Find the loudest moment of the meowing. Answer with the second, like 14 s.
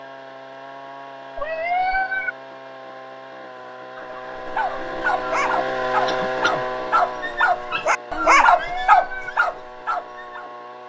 2 s.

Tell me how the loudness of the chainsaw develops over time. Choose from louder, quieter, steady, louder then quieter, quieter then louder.
louder then quieter.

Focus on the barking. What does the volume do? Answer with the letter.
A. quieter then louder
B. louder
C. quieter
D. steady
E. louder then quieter
B.